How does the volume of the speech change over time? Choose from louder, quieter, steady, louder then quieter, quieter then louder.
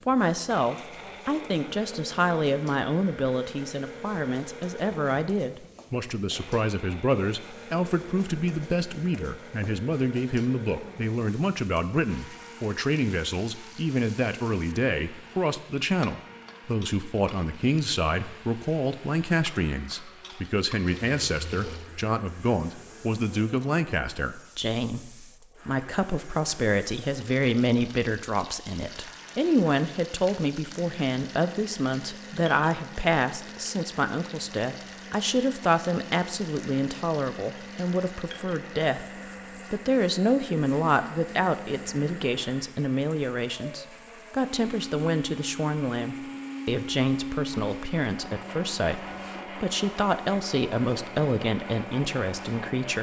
steady.